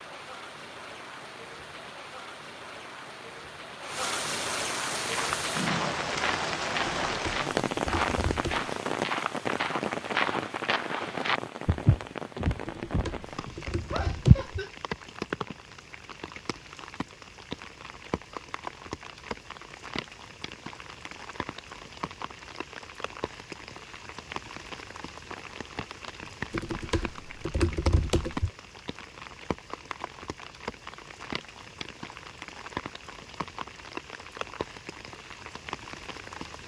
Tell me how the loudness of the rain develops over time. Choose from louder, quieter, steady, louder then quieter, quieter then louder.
quieter.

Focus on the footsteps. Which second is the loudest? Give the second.
14 s.